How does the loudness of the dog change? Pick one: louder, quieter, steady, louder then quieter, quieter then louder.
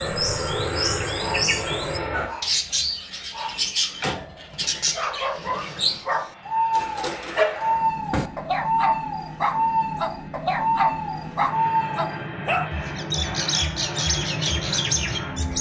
louder.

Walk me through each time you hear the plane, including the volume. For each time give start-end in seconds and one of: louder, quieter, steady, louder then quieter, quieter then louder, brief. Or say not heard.
0.0-2.3 brief
5.3-15.5 louder.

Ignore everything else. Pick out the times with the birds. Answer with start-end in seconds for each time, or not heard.
0.0-15.5.